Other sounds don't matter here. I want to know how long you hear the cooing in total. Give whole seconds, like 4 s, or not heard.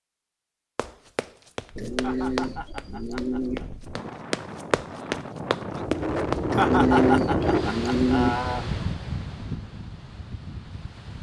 4 s.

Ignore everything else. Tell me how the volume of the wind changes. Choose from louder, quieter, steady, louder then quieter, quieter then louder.
louder then quieter.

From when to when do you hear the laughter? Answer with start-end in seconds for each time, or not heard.
2.0-3.6, 6.5-8.7.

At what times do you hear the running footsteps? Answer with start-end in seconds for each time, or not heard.
0.8-6.5.